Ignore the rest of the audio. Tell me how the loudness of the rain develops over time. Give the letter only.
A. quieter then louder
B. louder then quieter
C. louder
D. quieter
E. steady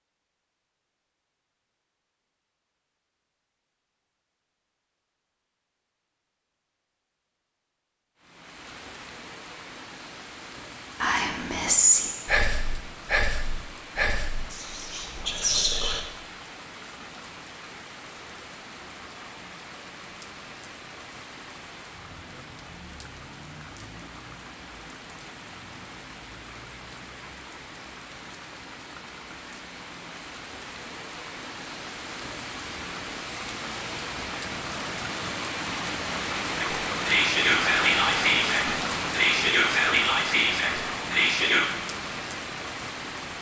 C.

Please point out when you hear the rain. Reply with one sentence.
The rain can be heard from 8.2 to 43.3 s.